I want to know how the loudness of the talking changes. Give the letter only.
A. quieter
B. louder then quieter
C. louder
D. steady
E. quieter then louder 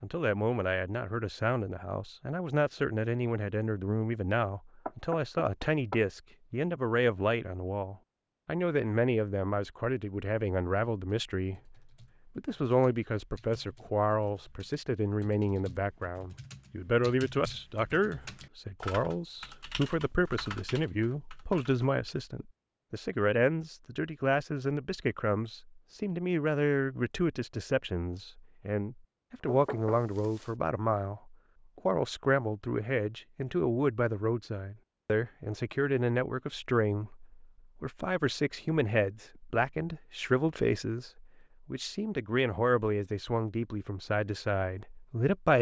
D.